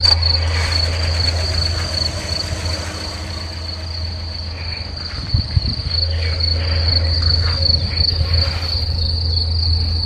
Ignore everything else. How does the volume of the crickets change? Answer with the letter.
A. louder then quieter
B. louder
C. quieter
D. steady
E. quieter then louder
E.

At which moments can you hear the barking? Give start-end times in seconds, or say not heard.
not heard.